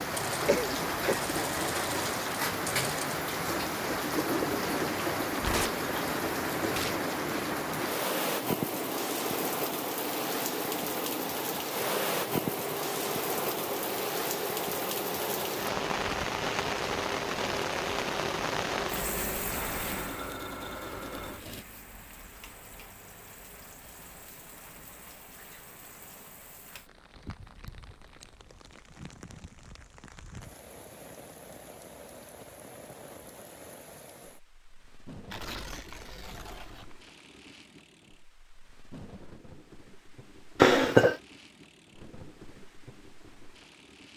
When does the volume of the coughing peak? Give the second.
41 s.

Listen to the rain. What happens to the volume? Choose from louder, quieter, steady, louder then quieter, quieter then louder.
quieter.